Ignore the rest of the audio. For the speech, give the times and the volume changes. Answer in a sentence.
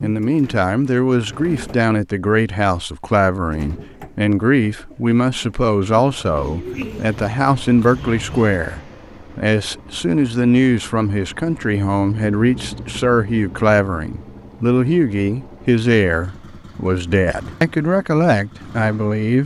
The speech can be heard from 0.0 to 19.4 s, at a steady volume.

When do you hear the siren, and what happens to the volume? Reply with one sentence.
The siren can't be heard in this clip.